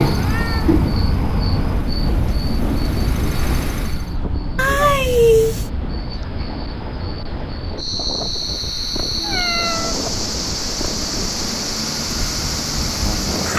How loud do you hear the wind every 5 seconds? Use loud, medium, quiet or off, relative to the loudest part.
loud, medium, medium.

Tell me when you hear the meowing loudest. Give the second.
5 s.